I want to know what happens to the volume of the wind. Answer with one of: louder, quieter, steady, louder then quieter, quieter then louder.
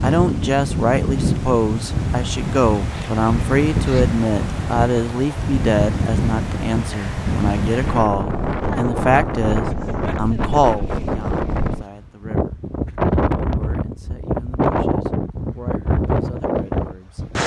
steady.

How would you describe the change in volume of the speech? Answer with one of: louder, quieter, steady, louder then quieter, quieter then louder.
quieter.